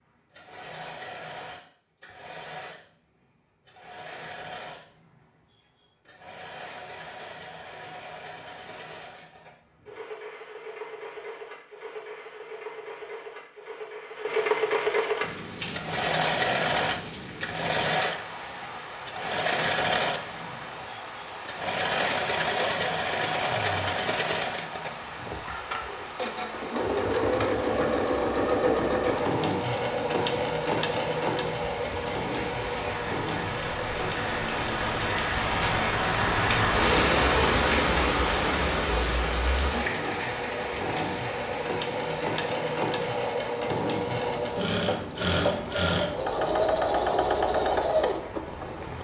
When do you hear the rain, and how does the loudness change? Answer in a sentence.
You can hear the rain from 15.2 to 48.9 s, getting louder then quieter.